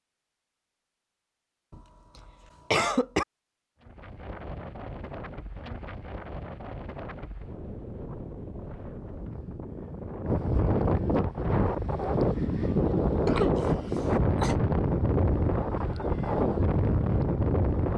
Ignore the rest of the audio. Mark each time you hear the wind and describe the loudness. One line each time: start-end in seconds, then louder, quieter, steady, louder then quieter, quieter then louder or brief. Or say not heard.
3.8-17.9 louder.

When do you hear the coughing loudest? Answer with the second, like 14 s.
3 s.